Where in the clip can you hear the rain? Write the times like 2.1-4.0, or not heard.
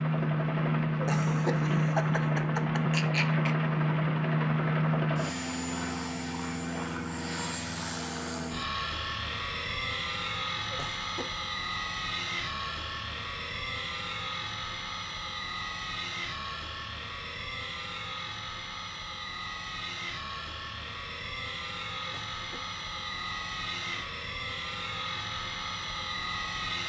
not heard.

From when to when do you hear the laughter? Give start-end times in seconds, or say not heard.
0.9-3.5, 10.7-11.4, 22.1-22.8.